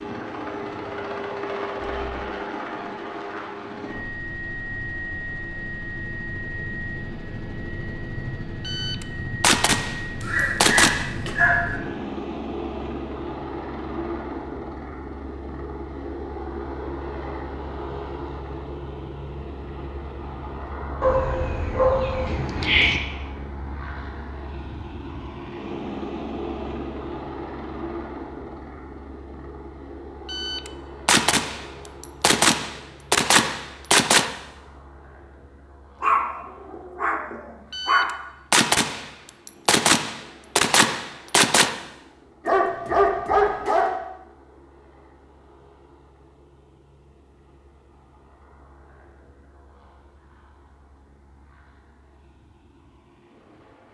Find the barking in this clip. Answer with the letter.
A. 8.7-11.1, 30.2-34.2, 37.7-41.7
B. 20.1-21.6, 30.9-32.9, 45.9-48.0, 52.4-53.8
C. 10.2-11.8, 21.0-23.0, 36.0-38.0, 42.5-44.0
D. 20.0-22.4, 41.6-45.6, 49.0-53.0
C.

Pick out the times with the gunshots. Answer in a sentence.
The gunshots can be heard from 8.7 to 11.1 s, from 30.2 to 34.2 s and from 37.7 to 41.7 s.